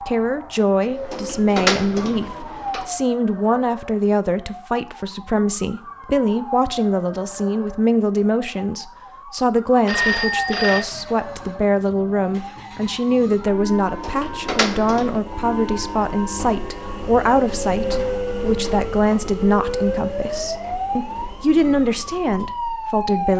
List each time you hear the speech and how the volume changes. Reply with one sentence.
The speech can be heard from 0.1 to 23.3 s, at a steady volume.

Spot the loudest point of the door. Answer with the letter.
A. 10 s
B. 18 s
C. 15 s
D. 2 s
D.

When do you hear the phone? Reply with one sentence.
The phone can be heard from 9.8 to 10.8 s.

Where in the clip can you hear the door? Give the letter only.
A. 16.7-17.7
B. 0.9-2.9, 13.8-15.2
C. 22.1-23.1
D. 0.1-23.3
B.